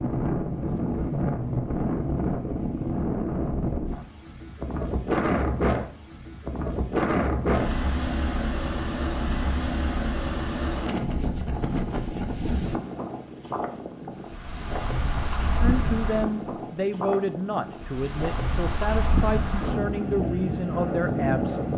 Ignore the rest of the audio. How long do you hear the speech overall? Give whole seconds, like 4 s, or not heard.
6 s.